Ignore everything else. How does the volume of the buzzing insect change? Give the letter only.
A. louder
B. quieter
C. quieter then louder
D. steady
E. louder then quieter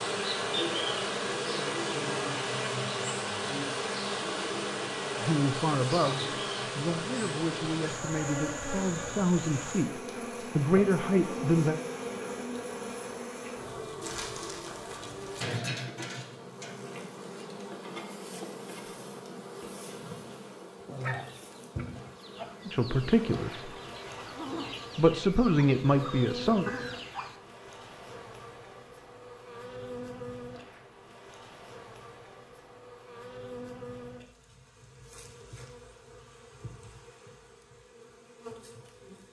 B.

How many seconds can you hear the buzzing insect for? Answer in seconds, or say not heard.
39 s.